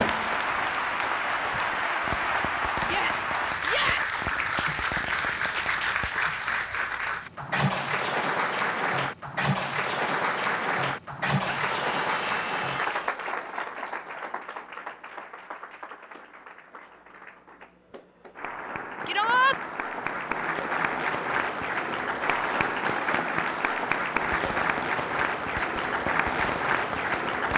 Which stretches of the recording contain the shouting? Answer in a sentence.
The shouting can be heard from 2.9 to 4.2 s, from 11.4 to 13.1 s and from 19.1 to 19.6 s.